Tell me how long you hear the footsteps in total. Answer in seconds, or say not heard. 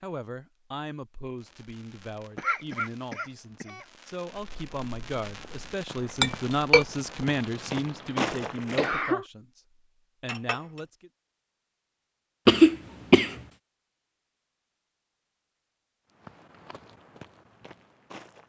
7 s.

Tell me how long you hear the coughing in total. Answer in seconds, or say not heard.
4 s.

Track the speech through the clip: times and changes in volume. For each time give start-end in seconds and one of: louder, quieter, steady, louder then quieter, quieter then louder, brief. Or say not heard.
0.0-11.1 louder then quieter.